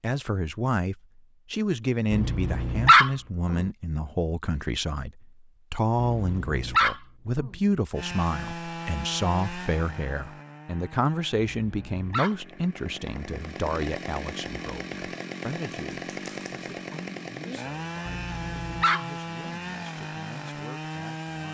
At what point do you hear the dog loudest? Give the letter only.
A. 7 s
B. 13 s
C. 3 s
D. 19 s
C.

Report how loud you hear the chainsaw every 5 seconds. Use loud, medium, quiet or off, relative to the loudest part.
off, loud, medium, loud, loud.